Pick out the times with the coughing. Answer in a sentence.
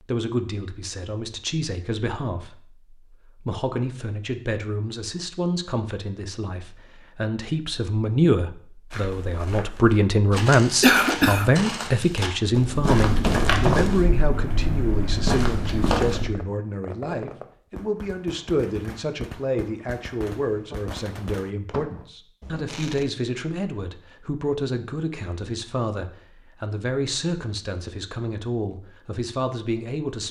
You can hear the coughing from 10.8 to 11.5 s.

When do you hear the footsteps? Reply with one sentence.
You can hear the footsteps from 8.9 to 16.3 s.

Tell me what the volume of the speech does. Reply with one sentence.
The volume of the speech goes up, then down.